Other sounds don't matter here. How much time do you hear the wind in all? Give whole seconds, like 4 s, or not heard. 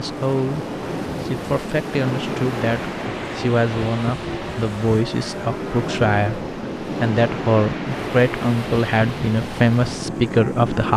11 s.